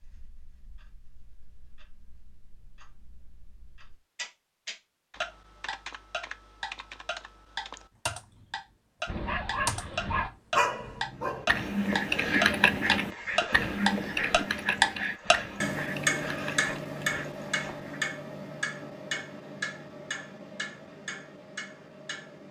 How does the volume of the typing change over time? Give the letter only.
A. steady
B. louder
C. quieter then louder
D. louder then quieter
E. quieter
D.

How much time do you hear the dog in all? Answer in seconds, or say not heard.
9 s.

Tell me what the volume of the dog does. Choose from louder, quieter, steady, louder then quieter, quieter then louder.
quieter.